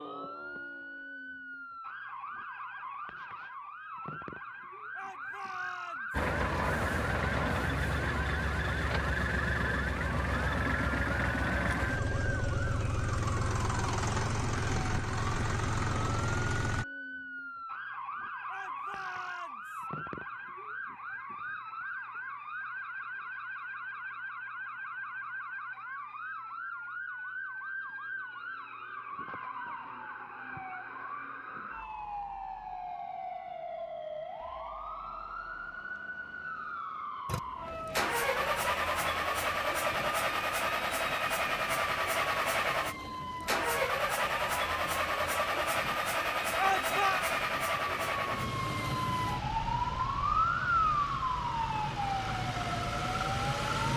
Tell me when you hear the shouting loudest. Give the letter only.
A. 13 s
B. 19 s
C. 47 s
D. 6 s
C.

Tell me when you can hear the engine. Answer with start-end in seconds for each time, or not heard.
6.1-16.9, 37.2-53.9.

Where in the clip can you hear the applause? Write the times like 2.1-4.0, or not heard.
not heard.